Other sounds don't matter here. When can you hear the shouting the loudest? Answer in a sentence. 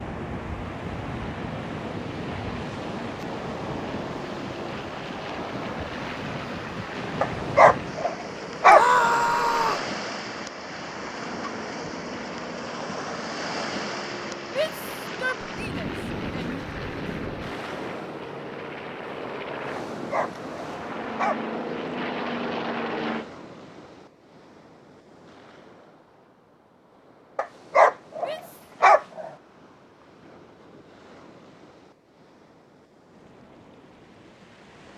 The volume of the shouting peaks at 9 seconds.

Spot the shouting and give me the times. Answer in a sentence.
You can hear the shouting from 8.7 to 9.8 s, from 14.6 to 16.6 s and from 28.2 to 28.6 s.